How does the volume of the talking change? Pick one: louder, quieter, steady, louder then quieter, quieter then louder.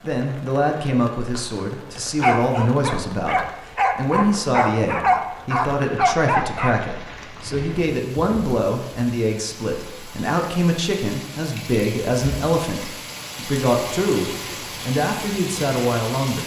steady.